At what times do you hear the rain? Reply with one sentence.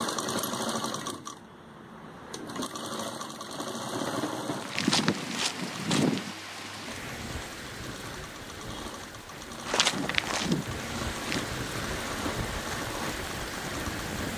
The rain can be heard from 4.9 to 14.3 s.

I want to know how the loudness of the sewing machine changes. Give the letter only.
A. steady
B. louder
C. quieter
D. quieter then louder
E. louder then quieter
D.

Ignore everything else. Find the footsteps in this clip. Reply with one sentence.
The footsteps can be heard from 4.5 to 6.3 s and from 9.7 to 11.4 s.